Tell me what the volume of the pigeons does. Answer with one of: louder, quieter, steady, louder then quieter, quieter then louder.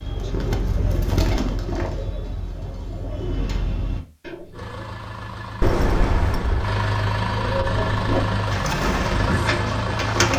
quieter then louder.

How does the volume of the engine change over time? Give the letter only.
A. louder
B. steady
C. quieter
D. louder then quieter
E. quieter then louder
A.